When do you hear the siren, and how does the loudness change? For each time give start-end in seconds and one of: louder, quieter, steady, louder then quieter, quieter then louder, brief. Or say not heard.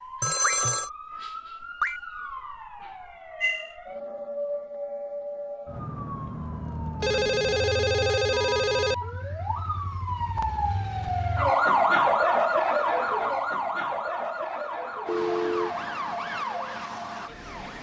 0.0-17.7 louder then quieter.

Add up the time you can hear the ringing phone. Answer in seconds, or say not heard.
3 s.